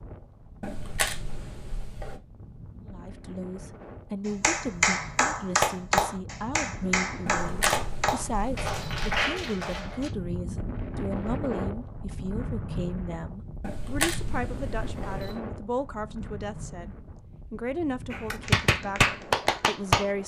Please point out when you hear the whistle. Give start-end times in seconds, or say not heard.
not heard.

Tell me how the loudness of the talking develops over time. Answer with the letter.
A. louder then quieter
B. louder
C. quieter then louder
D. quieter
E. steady
E.